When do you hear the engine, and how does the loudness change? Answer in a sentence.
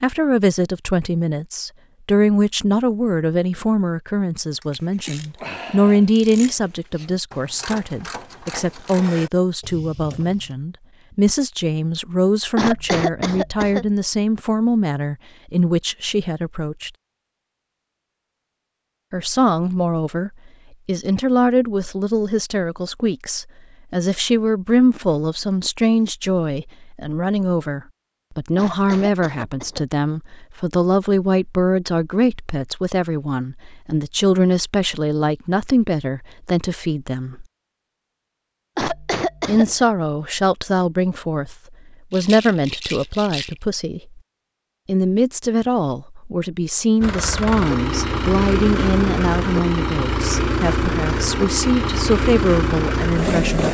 You can hear the engine from 47.0 to 53.6 s, at a steady volume.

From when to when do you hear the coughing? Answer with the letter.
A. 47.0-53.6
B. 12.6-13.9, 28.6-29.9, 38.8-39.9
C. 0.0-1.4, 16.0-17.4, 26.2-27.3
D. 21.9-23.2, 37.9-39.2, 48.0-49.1
B.